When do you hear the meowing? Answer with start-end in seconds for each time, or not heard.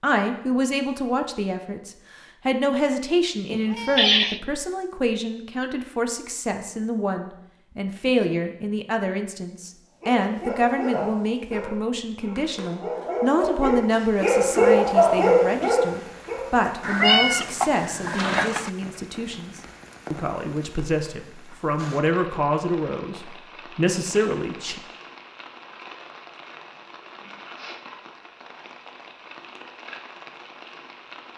3.5-4.4, 16.8-18.7.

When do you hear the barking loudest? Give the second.
15 s.